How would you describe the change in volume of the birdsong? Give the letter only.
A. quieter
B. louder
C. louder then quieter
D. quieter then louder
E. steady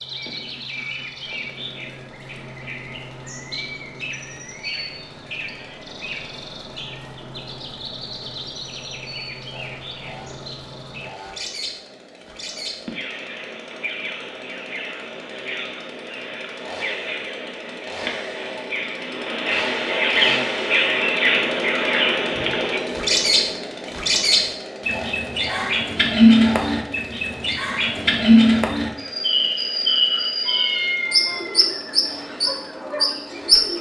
B.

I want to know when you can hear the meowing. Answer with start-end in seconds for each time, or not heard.
30.4-31.7.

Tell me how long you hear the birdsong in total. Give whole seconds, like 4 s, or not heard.
34 s.